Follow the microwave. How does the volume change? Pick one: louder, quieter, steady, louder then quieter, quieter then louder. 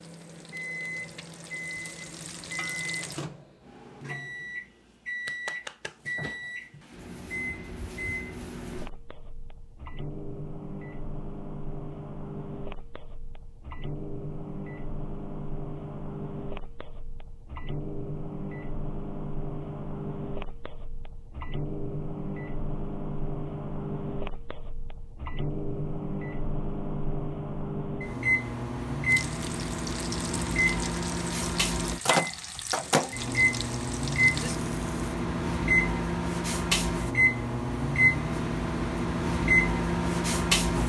louder.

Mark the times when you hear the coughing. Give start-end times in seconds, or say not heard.
not heard.